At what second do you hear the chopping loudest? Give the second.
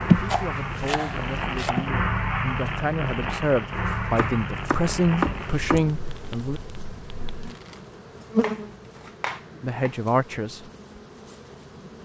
5 s.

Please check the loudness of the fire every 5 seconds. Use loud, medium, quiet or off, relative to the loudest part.
loud, medium, off.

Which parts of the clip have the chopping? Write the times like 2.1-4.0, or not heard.
0.2-1.9, 4.2-6.2, 8.4-9.9.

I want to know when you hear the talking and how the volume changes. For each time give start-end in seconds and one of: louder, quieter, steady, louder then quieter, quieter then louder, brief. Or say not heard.
0.0-6.6 louder
9.6-10.6 brief.